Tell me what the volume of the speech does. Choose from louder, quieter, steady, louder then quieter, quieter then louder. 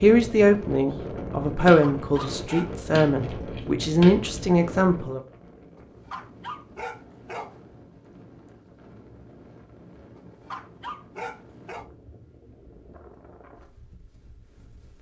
quieter then louder.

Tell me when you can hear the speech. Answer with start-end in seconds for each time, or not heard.
0.0-5.2.